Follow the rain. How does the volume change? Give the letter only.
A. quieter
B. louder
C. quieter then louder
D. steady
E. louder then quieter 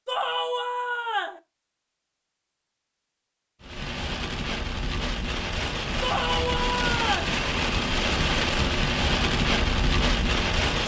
B.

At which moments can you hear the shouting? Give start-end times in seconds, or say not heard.
0.1-1.4, 6.0-7.3.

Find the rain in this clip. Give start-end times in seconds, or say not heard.
3.6-10.8.